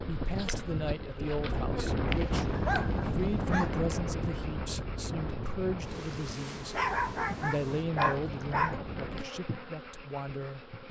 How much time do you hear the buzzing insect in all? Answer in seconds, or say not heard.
11 s.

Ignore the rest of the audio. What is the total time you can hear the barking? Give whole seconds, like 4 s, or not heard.
4 s.